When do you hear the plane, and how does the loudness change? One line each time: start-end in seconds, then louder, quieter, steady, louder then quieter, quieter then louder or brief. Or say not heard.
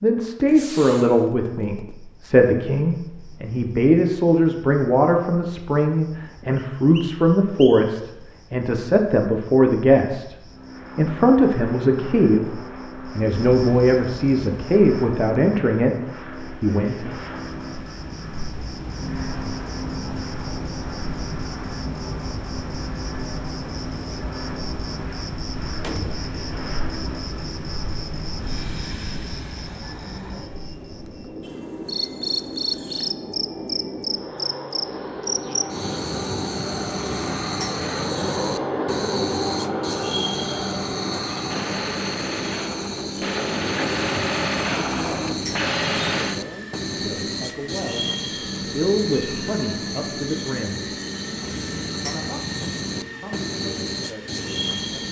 10.4-55.0 louder then quieter.